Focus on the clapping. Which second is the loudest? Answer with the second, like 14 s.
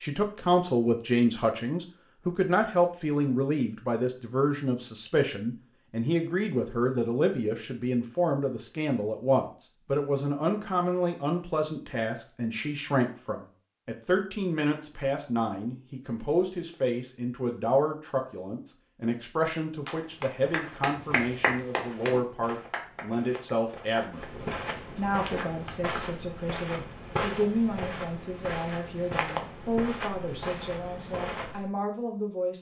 21 s.